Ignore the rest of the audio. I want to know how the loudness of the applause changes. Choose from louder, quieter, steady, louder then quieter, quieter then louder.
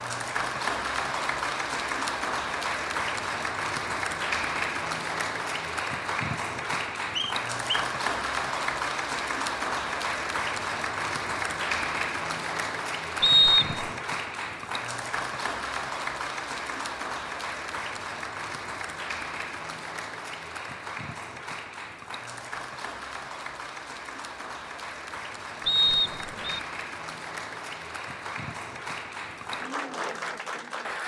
quieter.